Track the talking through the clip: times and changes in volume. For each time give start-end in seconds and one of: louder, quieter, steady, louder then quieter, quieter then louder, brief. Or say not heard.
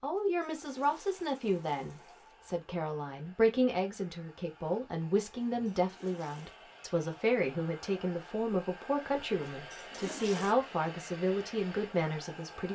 0.0-12.6 steady.